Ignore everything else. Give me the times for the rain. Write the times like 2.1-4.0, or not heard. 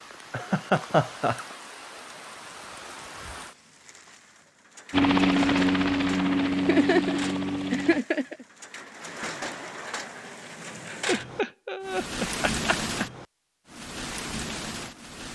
0.0-15.2.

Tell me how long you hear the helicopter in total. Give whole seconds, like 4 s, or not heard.
3 s.